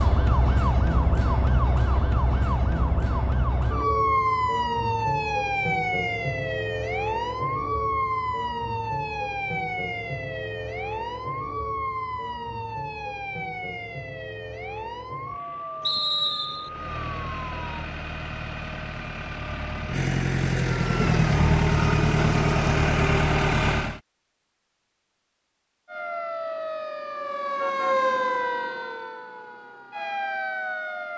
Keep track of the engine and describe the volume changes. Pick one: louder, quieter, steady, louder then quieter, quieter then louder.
louder.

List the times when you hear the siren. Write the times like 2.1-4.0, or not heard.
0.0-17.9, 25.9-31.1.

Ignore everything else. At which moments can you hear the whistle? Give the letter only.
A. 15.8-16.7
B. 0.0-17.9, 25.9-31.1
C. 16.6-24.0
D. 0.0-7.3
A.